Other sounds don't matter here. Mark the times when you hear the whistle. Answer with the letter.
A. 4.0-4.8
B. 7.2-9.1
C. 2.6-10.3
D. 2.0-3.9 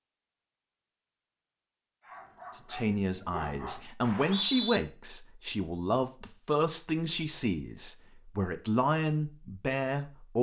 A.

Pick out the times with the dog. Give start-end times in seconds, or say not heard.
2.0-3.9.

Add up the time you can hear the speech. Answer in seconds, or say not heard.
8 s.